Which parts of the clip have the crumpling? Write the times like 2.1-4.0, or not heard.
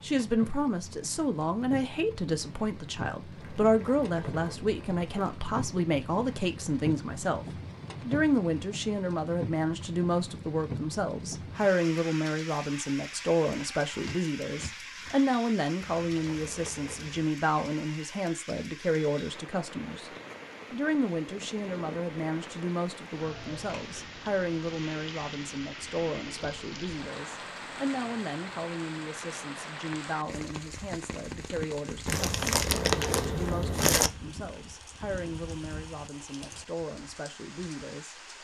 3.4-5.3, 15.8-17.2, 32.0-34.1.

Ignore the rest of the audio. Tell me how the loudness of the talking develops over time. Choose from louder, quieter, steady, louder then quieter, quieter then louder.
quieter.